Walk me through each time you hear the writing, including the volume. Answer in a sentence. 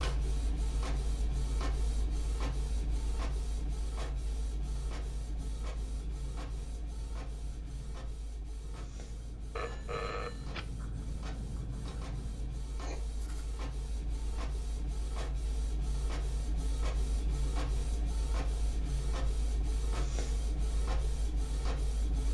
You can hear the writing from 4.8 to 13.4 s, getting louder.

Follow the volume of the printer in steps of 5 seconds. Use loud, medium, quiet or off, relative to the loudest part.
loud, medium, medium, loud, loud.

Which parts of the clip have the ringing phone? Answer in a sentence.
You can hear the ringing phone from 9.6 to 10.7 s.